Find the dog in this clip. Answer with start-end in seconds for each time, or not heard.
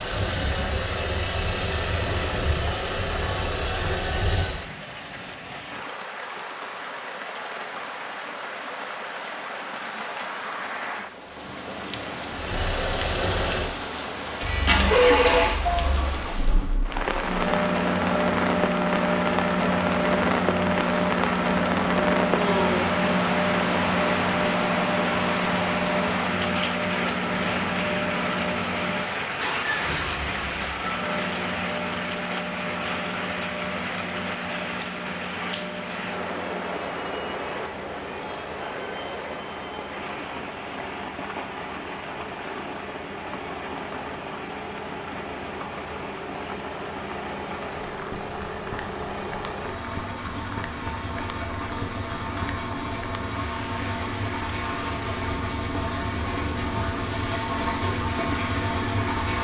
14.4-16.1.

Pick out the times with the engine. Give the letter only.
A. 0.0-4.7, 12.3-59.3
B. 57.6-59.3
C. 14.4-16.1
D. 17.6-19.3
A.